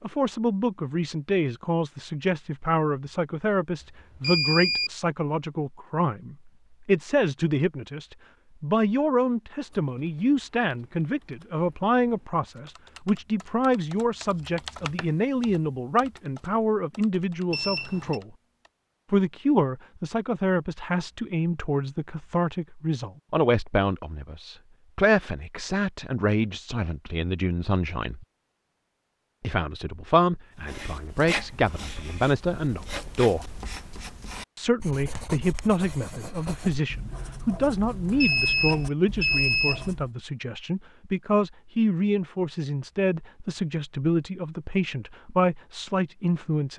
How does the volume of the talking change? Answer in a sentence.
The loudness of the talking stays about the same.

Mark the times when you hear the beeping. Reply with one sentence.
You can hear the beeping from 3.8 to 4.9 s, from 17.5 to 18.2 s and from 38.2 to 39.9 s.